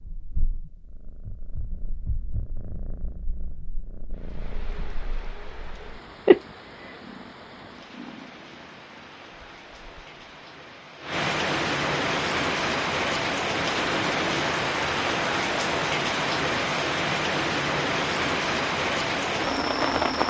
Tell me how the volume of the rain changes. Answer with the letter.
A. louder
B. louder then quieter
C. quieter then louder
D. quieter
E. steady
A.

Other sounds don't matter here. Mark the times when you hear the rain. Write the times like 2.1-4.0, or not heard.
4.1-20.2.